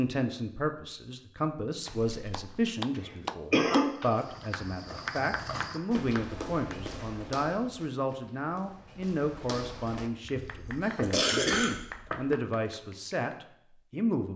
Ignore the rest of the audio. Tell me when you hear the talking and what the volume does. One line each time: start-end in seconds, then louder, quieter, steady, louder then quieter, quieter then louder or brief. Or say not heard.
0.0-14.3 steady.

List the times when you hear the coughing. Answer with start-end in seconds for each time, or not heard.
1.9-3.9, 10.4-11.8.